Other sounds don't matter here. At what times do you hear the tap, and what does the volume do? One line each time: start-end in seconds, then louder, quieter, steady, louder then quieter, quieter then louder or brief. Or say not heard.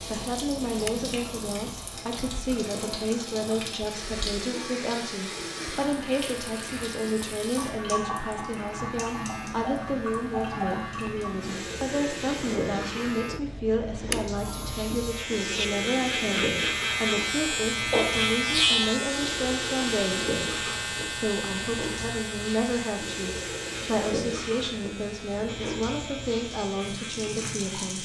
0.0-28.0 steady.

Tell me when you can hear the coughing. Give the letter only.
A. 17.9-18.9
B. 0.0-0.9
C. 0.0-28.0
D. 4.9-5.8
A.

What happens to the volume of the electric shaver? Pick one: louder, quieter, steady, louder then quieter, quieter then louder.
louder then quieter.